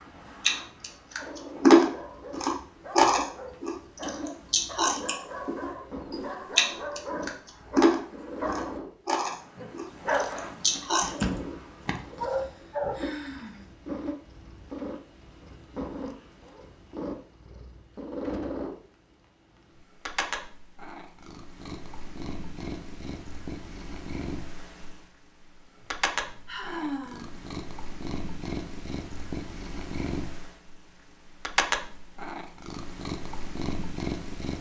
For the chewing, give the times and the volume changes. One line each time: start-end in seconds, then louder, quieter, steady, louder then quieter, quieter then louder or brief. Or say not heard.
0.5-11.2 quieter.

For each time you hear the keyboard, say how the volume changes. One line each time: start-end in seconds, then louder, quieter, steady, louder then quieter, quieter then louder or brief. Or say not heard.
not heard.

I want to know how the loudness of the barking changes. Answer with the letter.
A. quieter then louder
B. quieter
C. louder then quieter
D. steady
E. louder
E.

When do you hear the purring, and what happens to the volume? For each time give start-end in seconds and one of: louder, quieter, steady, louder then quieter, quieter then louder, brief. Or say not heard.
0.0-34.5 louder.